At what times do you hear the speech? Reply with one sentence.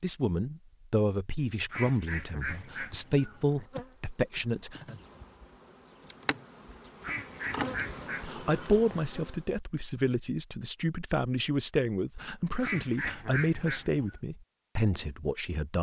The speech can be heard from 0.0 to 5.0 s and from 8.2 to 15.7 s.